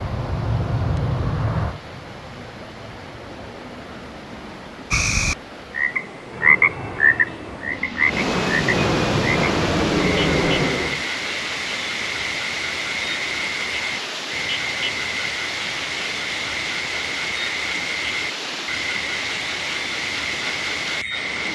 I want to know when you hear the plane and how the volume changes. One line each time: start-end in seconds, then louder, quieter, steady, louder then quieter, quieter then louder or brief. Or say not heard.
0.0-4.9 quieter
6.2-11.1 louder.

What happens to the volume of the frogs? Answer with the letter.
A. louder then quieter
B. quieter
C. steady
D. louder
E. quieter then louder
B.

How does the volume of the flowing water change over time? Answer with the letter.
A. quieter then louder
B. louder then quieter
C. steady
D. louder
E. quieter
D.